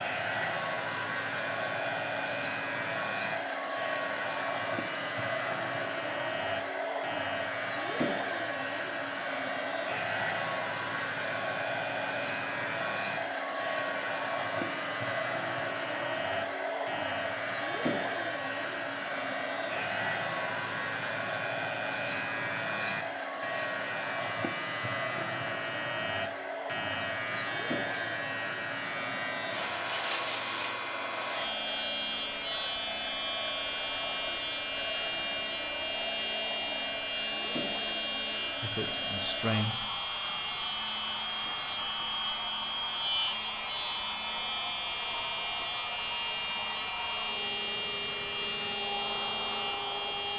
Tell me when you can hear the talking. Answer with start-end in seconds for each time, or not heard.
38.6-39.9.